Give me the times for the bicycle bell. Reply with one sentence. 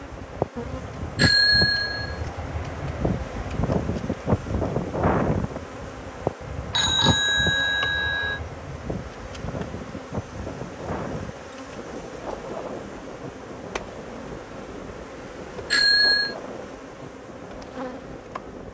The bicycle bell can be heard from 1.1 to 2.1 s, from 6.7 to 8.4 s and from 15.7 to 16.4 s.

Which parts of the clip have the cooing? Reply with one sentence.
The cooing can't be heard in this clip.